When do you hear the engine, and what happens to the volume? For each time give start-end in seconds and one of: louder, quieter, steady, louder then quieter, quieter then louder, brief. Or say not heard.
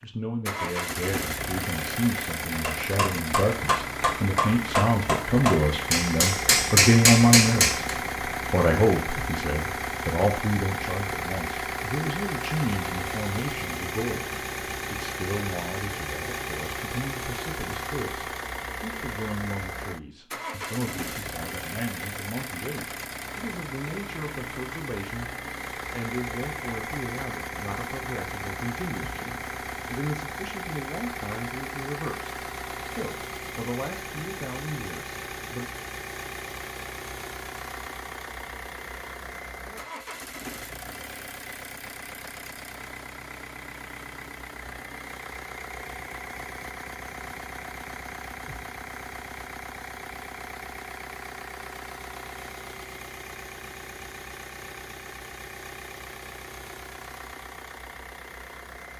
0.0-58.9 quieter.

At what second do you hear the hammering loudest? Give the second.
7 s.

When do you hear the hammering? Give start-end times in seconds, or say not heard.
2.6-8.0.